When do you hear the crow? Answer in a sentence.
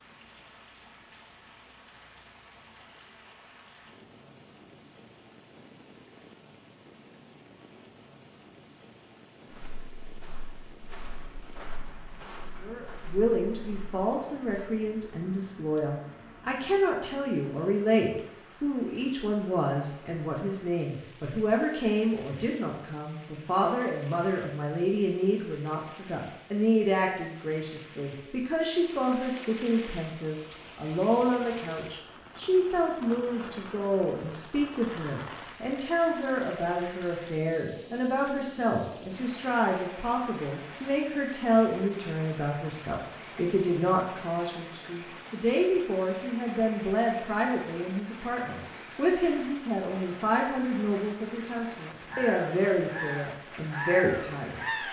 The crow can be heard from 52.1 to 54.8 s.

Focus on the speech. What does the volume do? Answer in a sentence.
The loudness of the speech stays about the same.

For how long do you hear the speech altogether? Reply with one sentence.
You can hear the speech for 42 seconds altogether.